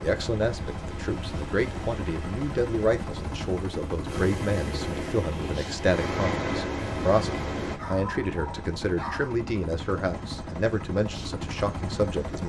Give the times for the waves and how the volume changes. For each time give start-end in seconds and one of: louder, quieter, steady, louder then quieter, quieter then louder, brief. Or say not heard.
0.1-7.8 louder.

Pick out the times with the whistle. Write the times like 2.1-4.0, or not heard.
not heard.